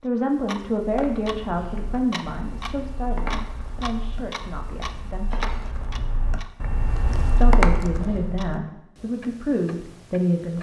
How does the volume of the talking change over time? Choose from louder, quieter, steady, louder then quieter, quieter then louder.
quieter then louder.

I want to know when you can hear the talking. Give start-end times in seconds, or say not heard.
0.0-5.5, 7.4-10.5.